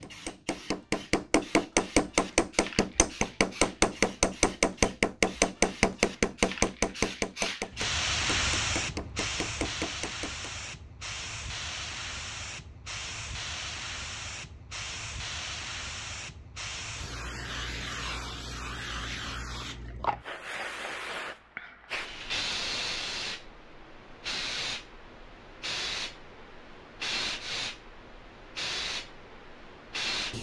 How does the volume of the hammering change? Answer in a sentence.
The loudness of the hammering goes down.